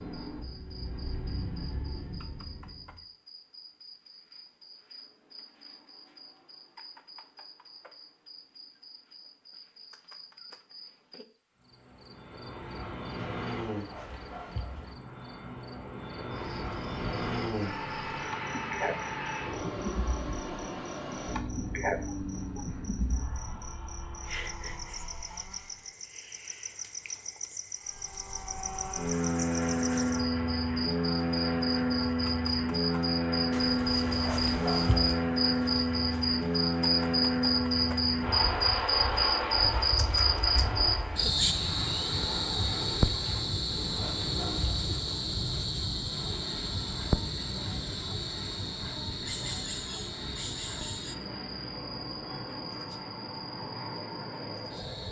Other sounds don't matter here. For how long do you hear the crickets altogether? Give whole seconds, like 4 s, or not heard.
55 s.